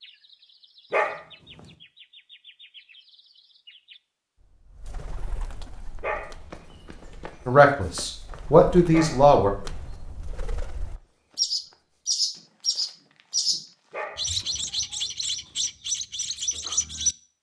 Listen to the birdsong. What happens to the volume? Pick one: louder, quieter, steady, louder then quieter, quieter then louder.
louder.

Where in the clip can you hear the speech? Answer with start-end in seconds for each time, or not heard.
7.5-9.5.